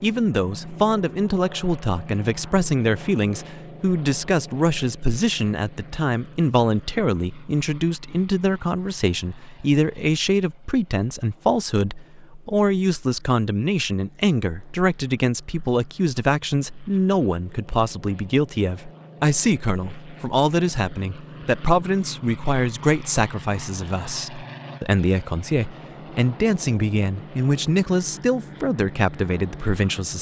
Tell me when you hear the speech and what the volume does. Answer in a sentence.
The speech can be heard from 0.0 to 30.1 s, at a steady volume.